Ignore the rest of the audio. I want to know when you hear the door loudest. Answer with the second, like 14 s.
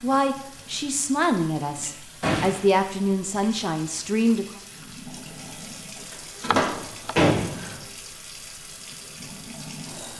7 s.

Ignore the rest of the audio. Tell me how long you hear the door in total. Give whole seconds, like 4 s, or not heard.
2 s.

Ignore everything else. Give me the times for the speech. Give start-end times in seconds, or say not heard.
0.0-4.6.